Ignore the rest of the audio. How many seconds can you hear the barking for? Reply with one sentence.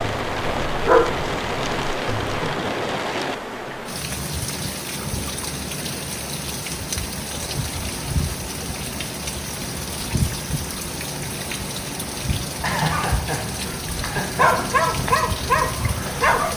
The barking can be heard for 5 seconds in total.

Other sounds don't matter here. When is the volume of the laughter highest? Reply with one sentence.
The volume of the laughter peaks at 13 seconds.